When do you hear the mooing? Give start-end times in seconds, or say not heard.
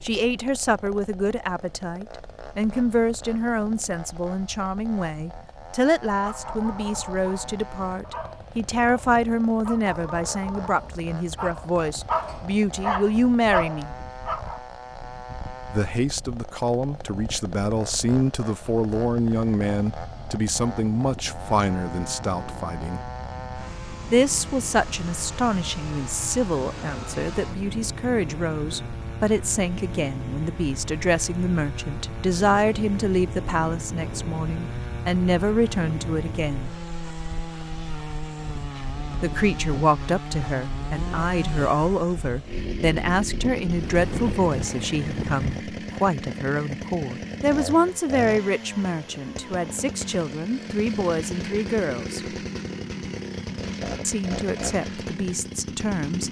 not heard.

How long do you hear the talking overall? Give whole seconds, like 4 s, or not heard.
49 s.